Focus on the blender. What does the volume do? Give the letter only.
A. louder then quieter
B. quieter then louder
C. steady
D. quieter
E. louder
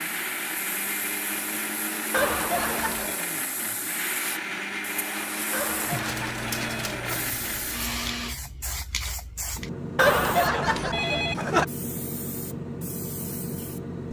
C.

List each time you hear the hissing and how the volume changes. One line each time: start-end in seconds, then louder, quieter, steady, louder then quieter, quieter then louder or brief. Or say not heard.
0.0-14.0 louder.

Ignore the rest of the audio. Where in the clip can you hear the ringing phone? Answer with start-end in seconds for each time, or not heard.
2.1-3.1, 5.5-7.3, 9.9-11.7.